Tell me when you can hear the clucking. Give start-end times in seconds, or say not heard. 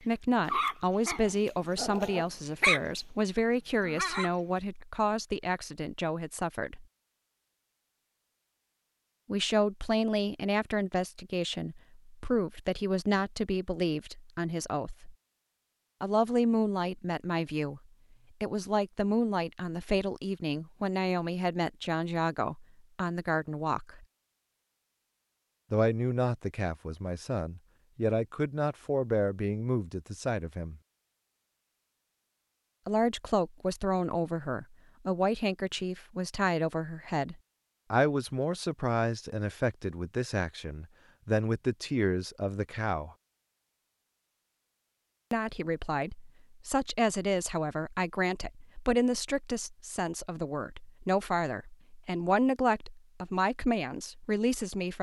not heard.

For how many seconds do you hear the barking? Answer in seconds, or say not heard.
3 s.